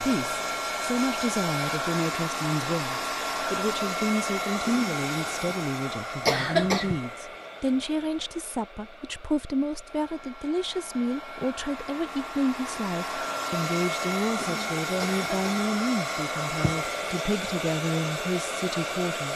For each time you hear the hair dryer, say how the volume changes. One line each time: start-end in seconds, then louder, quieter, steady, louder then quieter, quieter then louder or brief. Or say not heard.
0.0-19.3 quieter then louder.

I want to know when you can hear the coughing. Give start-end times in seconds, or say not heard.
6.2-7.0, 15.0-15.7.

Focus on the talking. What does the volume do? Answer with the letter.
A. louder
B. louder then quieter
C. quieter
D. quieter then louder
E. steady
E.